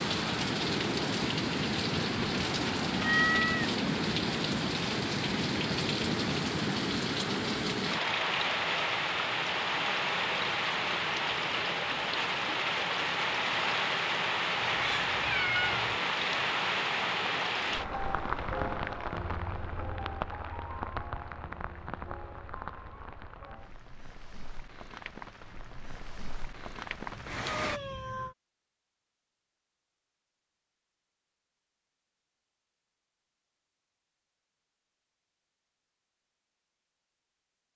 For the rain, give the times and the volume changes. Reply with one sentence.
The rain can be heard from 0.0 to 27.8 s, getting quieter.